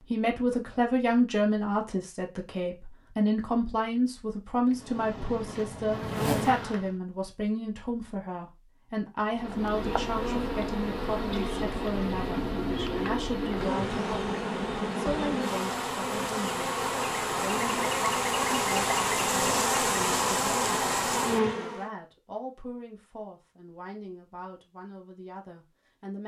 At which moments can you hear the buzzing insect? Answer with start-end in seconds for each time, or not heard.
4.7-7.0, 9.3-21.9.